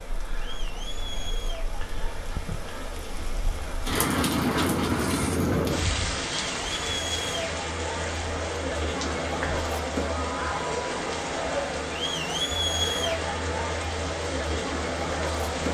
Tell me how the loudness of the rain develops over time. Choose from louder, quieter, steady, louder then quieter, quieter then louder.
louder then quieter.